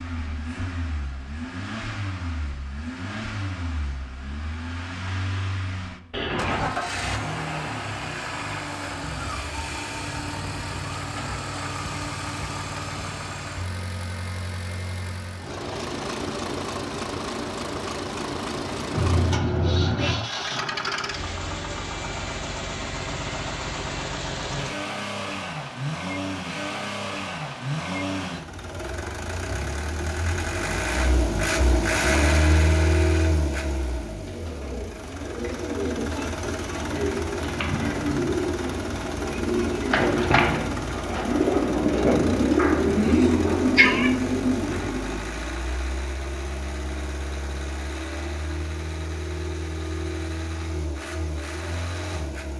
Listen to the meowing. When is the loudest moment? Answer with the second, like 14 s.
44 s.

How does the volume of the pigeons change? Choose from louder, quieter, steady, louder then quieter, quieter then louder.
louder.